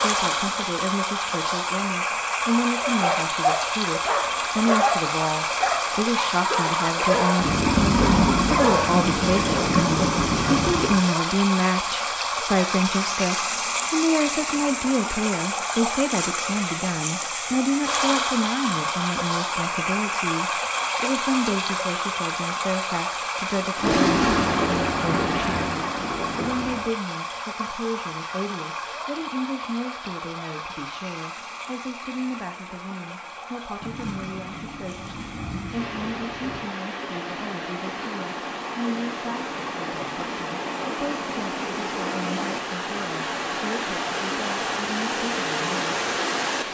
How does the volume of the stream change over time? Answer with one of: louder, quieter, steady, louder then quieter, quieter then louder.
quieter then louder.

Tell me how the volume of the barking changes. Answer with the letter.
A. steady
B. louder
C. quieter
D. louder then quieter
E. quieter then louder
A.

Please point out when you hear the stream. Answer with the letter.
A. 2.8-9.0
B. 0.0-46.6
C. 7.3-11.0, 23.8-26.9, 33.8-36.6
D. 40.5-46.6
B.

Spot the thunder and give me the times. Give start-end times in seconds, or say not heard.
7.3-11.0, 23.8-26.9, 33.8-36.6.